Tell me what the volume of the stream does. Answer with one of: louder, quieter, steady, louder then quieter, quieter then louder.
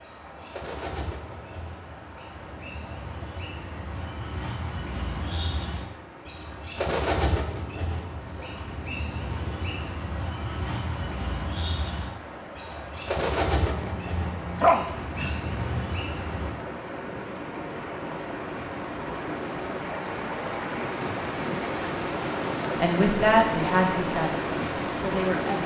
louder.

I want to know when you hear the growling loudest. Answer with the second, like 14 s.
15 s.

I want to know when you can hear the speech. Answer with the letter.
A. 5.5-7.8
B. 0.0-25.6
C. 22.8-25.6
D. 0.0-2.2
C.